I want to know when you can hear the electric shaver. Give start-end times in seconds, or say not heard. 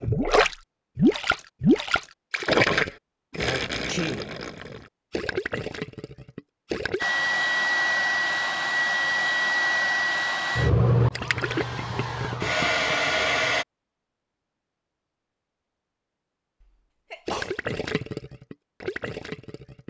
not heard.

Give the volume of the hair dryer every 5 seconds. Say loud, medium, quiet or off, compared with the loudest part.
off, loud, loud, off.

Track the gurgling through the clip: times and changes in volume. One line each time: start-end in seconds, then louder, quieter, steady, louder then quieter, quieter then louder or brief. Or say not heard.
0.0-7.0 quieter
11.2-12.9 brief
17.2-19.8 brief.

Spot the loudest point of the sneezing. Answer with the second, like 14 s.
4 s.